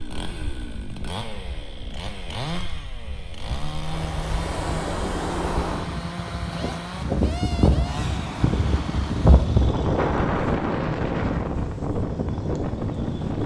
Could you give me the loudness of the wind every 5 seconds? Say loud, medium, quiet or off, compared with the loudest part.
medium, loud, loud.